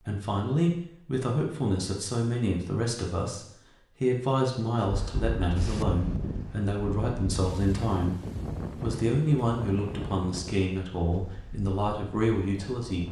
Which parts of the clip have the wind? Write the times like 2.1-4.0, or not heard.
4.8-13.0.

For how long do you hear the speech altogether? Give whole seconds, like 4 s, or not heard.
13 s.